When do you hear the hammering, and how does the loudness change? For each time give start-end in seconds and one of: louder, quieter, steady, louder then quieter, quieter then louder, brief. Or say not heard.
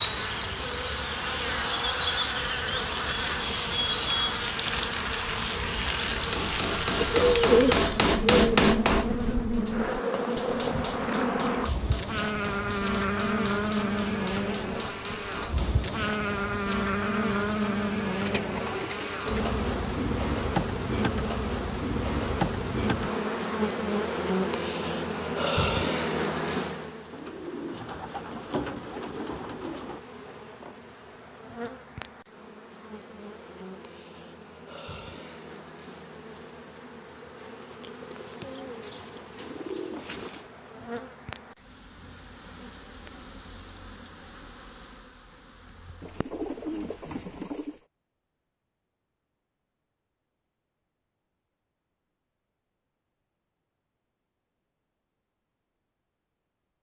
6.0-15.8 quieter.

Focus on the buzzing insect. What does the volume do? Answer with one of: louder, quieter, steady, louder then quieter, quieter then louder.
quieter.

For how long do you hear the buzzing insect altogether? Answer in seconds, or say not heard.
47 s.